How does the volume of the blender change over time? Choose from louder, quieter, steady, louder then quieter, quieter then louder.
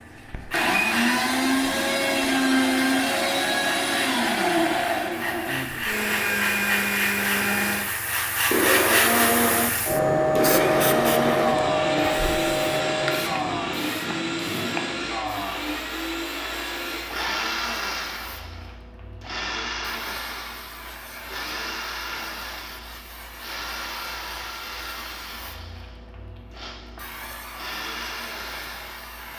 quieter.